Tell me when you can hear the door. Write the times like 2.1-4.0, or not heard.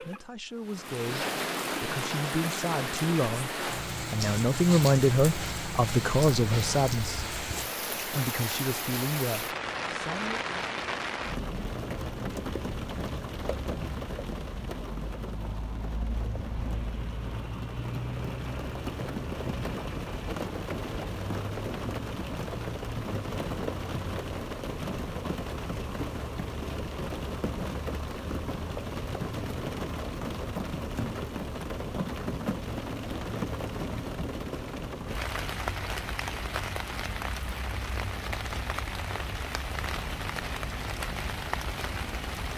not heard.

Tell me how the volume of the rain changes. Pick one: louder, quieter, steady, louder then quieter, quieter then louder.
steady.